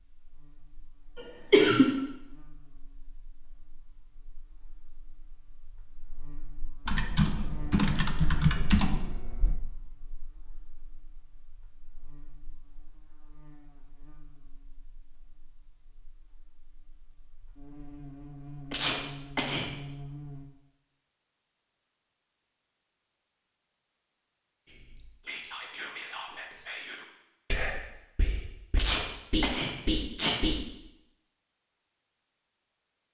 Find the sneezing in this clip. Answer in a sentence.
You can hear the sneezing from 1.1 to 1.9 s, from 18.7 to 19.6 s and from 28.8 to 30.4 s.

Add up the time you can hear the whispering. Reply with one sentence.
The whispering can be heard for 6 seconds in total.